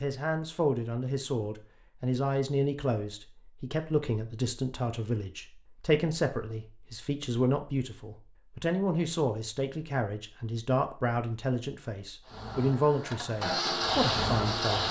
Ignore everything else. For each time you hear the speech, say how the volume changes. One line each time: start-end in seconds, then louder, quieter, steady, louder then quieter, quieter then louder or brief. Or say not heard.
0.0-14.8 steady.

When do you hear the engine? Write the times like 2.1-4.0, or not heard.
12.2-14.8.